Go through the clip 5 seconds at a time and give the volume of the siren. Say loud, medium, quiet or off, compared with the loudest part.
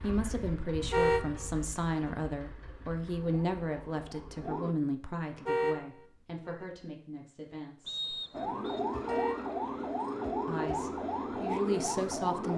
medium, loud, loud.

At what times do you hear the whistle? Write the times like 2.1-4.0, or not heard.
7.8-8.8.